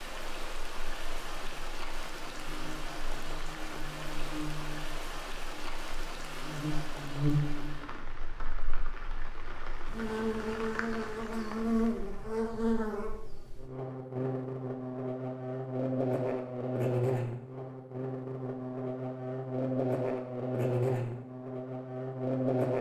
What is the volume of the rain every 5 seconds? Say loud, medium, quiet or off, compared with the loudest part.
loud, loud, loud, off, off.